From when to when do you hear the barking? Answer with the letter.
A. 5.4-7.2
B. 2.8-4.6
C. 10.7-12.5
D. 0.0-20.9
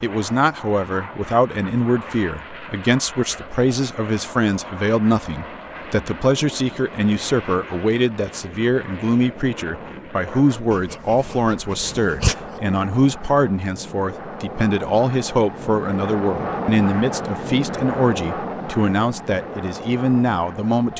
C.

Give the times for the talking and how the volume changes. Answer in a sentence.
You can hear the talking from 0.0 to 20.9 s, at a steady volume.